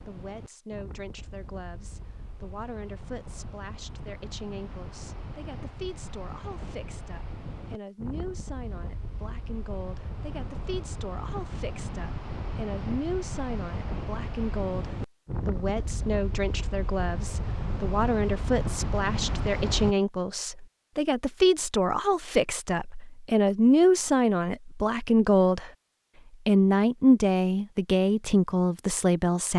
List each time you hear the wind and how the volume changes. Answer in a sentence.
The wind can be heard from 0.0 to 19.9 s, getting louder.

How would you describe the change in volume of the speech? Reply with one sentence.
The loudness of the speech goes up.